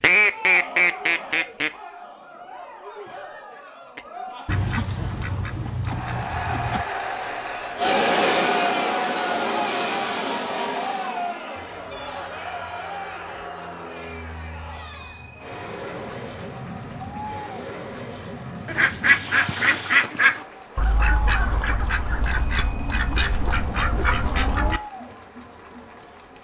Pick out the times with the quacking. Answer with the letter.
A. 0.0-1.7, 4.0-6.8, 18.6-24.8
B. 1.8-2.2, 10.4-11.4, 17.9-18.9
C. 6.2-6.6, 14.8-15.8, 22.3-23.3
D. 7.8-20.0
A.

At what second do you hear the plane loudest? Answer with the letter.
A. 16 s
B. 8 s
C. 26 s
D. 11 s
B.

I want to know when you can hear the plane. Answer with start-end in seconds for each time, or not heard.
7.8-20.0.